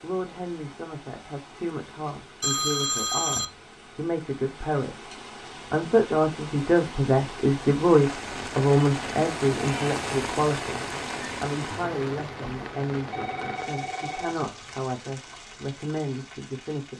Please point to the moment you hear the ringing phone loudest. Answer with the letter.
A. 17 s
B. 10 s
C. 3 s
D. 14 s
C.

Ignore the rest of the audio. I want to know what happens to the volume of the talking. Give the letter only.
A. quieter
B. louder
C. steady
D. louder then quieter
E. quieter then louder
D.